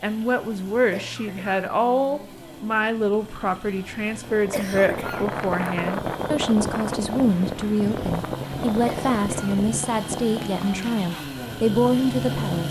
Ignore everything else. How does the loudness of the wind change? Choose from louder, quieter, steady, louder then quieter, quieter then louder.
quieter.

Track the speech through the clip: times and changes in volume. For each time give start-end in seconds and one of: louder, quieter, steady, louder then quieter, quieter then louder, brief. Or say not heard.
0.0-12.6 steady.